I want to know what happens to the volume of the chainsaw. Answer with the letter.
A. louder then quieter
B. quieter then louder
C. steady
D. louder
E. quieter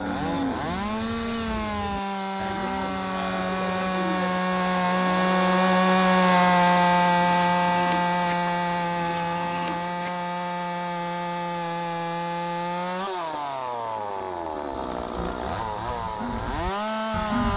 A.